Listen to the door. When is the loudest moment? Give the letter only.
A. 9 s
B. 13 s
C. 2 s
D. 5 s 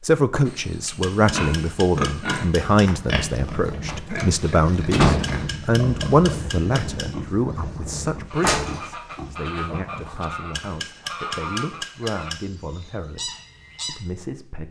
D.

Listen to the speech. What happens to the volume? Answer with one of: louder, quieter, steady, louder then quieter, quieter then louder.
quieter.